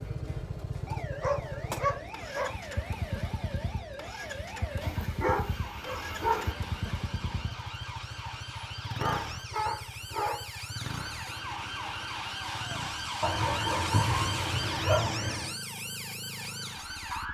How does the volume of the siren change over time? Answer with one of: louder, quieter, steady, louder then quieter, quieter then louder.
louder.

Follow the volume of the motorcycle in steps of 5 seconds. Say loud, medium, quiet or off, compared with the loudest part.
loud, loud, medium, medium.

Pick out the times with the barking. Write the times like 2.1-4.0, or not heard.
1.2-2.5, 4.8-6.5, 8.9-10.4, 13.2-15.5.